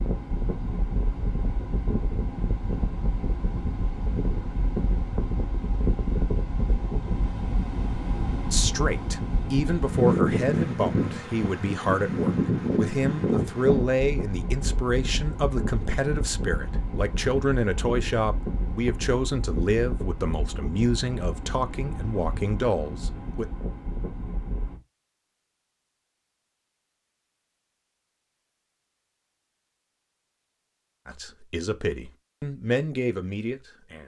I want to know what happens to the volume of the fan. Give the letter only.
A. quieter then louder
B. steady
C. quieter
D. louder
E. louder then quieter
E.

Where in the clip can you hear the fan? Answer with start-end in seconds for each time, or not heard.
0.0-24.8.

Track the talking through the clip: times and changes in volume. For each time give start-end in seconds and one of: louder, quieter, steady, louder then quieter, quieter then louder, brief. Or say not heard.
8.5-23.4 steady
31.1-34.0 brief.